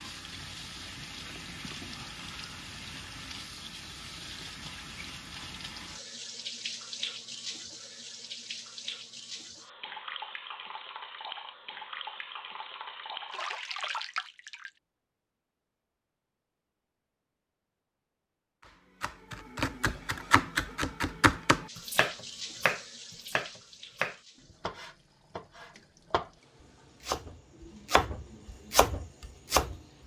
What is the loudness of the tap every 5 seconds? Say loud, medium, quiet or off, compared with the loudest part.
loud, loud, loud, off, medium, quiet.